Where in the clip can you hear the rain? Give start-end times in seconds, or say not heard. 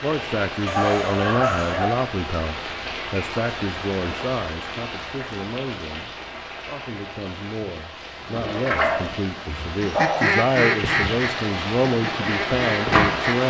0.0-13.4.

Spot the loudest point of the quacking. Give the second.
10 s.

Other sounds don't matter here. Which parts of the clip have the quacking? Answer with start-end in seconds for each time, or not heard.
9.8-13.4.